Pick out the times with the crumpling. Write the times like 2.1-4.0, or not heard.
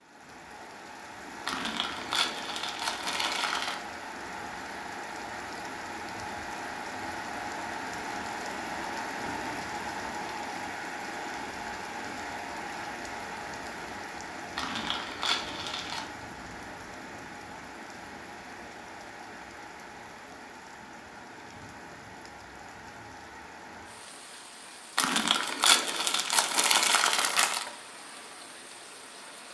1.4-3.8, 14.6-16.1, 24.9-27.7.